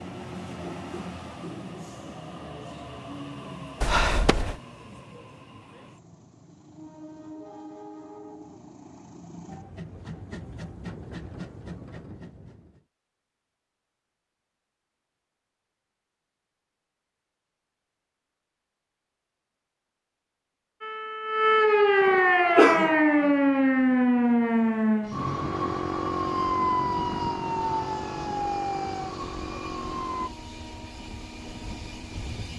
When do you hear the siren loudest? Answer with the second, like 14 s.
22 s.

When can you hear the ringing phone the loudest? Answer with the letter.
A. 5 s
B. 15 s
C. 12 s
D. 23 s
D.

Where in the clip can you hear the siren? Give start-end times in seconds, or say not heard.
20.8-30.3.